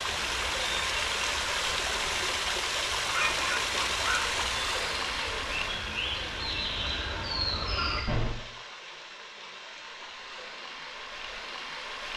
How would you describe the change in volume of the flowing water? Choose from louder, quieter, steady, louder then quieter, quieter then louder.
quieter.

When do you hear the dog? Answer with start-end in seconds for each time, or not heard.
2.9-4.5.